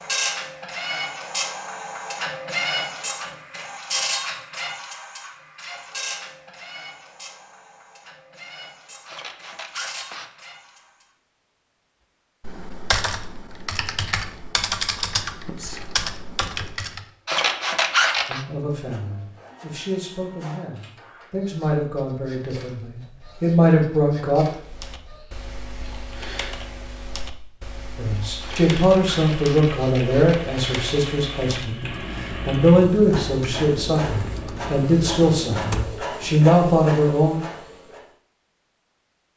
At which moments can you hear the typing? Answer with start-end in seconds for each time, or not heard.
12.4-17.1, 24.6-36.5.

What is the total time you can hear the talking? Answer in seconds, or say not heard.
16 s.